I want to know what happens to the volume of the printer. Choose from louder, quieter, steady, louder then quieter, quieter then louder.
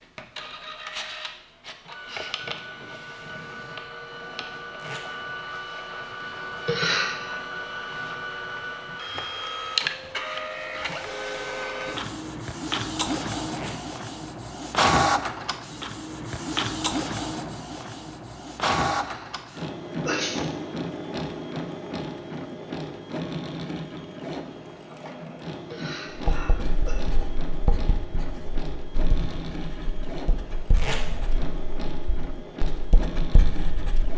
louder then quieter.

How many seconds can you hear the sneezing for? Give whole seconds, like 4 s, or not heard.
3 s.